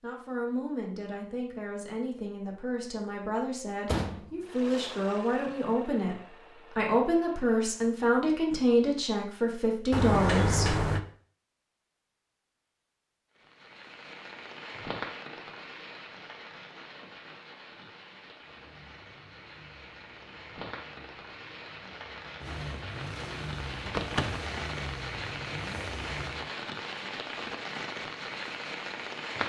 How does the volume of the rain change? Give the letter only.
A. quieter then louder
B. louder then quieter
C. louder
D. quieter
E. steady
A.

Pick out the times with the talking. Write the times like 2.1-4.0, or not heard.
0.0-6.2, 6.8-10.8.